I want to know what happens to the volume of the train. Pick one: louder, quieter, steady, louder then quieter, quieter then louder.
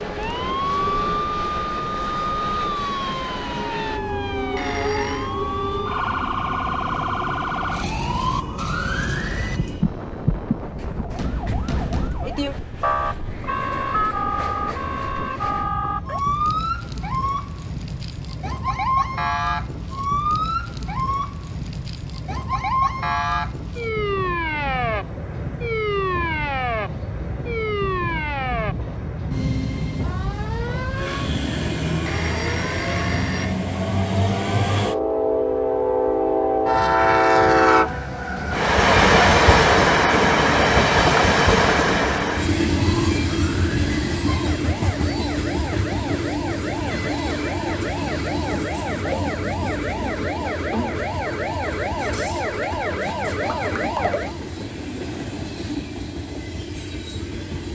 louder then quieter.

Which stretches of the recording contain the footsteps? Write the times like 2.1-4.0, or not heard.
not heard.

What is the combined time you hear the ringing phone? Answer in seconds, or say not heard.
2 s.